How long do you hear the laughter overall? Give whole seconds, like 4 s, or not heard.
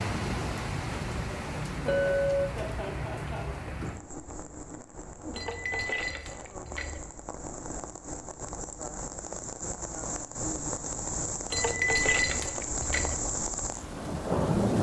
2 s.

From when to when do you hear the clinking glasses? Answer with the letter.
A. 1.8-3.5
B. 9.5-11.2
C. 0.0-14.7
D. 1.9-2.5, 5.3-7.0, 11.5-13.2
D.